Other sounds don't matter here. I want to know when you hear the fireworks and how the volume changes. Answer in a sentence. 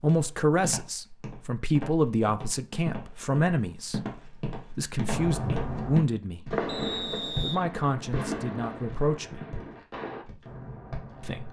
You can hear the fireworks from 5.1 to 11.4 s, getting quieter.